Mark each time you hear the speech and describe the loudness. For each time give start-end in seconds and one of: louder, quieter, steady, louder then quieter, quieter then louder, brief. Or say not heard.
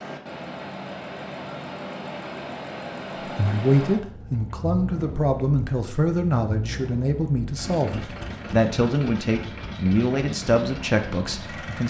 3.4-11.8 steady.